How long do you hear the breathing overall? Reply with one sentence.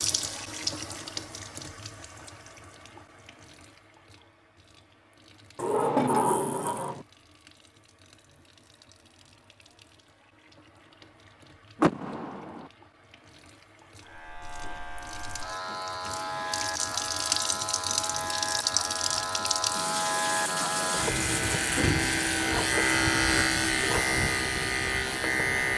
You can't hear the breathing here.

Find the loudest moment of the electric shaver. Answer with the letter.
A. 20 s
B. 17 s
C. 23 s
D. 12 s
C.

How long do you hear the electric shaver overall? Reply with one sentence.
You can hear the electric shaver for 12 seconds altogether.